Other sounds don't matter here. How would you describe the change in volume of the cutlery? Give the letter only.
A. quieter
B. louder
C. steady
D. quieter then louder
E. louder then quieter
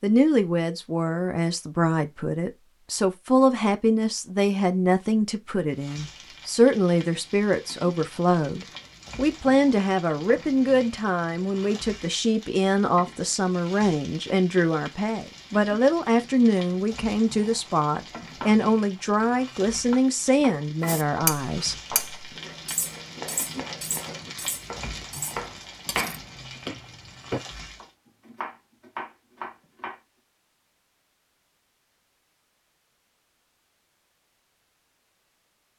A.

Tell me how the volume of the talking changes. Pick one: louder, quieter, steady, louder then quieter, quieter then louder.
steady.